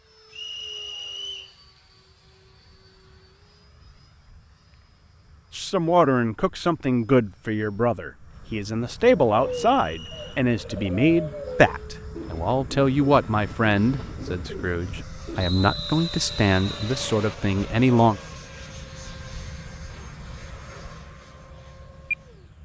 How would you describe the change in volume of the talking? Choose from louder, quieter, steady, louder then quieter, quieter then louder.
steady.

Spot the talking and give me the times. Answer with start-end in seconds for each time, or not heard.
5.5-18.2.